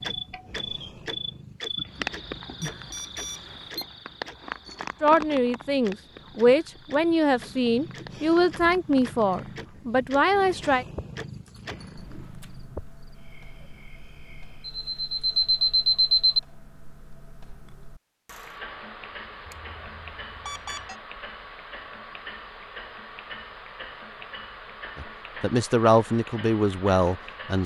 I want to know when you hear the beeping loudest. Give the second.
16 s.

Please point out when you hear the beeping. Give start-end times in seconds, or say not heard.
2.6-3.9, 14.7-16.4, 19.4-20.9.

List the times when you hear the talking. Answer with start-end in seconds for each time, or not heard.
5.0-10.8, 24.9-27.6.